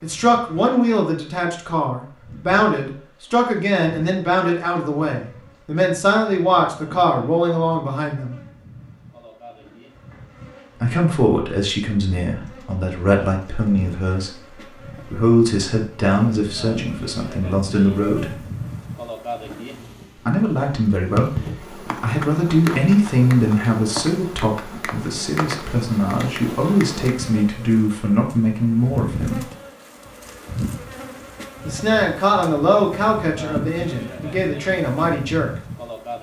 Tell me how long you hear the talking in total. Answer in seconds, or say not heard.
29 s.